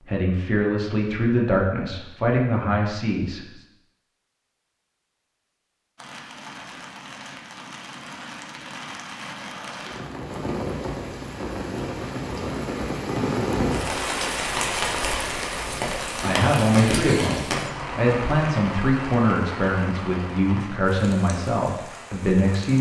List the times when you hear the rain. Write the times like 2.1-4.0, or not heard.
6.0-22.7.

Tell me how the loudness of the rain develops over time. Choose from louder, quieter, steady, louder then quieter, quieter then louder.
louder then quieter.